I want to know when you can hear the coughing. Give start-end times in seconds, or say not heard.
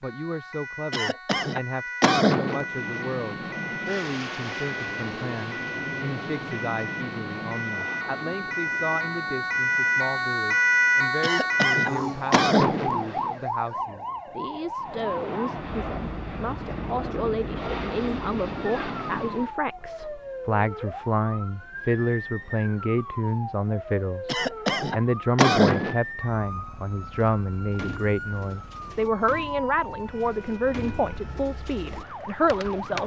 0.9-2.6, 11.2-13.1, 24.2-25.9.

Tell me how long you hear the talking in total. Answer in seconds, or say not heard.
33 s.